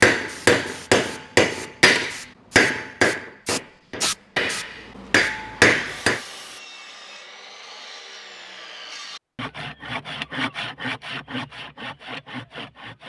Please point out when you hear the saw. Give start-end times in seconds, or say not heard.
5.5-13.0.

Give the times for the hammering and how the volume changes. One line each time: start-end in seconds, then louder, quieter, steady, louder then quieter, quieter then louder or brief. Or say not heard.
0.0-6.2 quieter then louder.